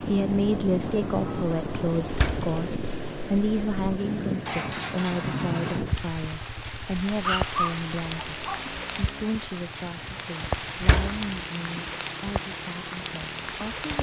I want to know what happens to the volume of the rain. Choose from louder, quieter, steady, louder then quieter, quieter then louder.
steady.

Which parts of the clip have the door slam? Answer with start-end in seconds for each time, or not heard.
2.1-2.5, 10.8-11.2.